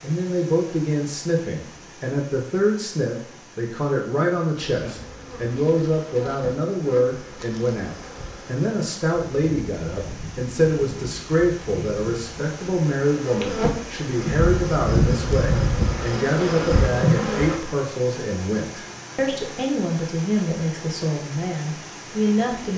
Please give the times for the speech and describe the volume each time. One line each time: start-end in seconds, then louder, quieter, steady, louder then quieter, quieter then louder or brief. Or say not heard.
0.0-22.7 steady.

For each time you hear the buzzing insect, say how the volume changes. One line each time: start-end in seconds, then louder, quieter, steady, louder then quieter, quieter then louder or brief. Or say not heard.
4.5-17.6 louder.